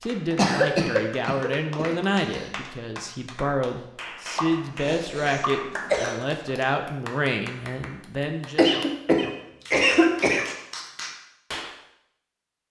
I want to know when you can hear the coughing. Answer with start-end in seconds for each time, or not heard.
0.3-2.5, 4.3-6.2, 8.6-10.4.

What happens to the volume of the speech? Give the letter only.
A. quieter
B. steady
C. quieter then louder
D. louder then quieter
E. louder
B.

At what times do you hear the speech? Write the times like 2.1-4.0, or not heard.
0.0-8.7.